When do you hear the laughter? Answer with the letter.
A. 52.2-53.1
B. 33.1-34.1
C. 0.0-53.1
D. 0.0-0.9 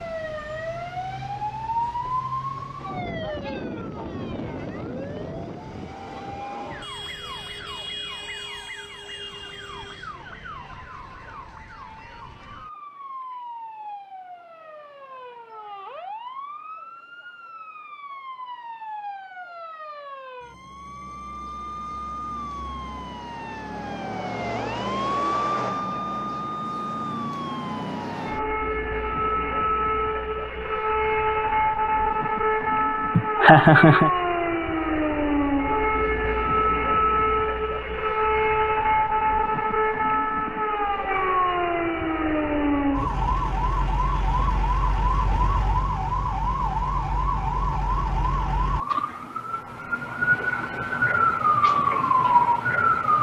B.